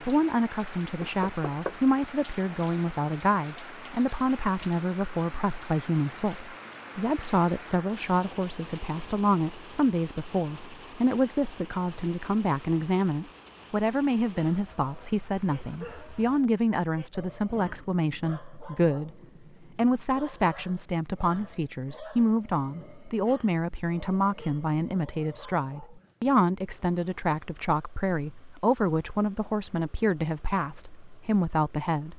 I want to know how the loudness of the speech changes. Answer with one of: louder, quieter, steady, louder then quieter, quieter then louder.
steady.